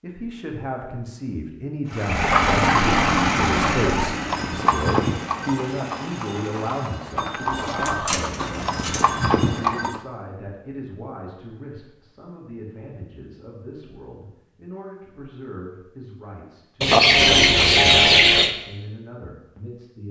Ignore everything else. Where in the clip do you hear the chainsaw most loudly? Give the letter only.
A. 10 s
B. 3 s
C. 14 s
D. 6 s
B.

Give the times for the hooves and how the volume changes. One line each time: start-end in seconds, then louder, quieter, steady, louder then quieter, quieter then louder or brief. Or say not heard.
4.2-10.0 quieter then louder.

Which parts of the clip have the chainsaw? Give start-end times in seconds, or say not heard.
1.9-7.0.